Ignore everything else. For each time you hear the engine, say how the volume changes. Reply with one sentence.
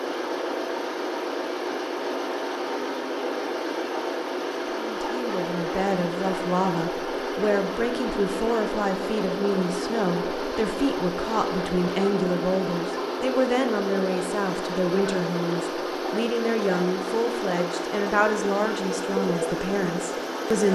The engine can be heard from 0.0 to 20.7 s, at a steady volume.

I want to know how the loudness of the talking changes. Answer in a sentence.
The volume of the talking stays about the same.